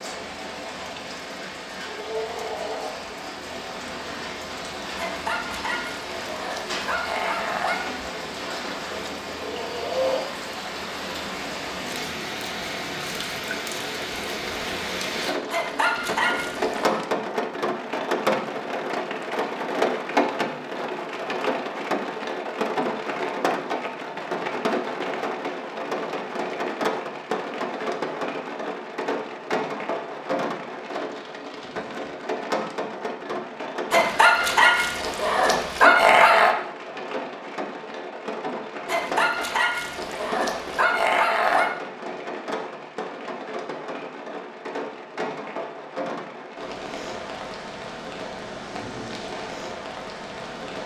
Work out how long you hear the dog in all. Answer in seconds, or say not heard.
10 s.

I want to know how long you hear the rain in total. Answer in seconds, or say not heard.
51 s.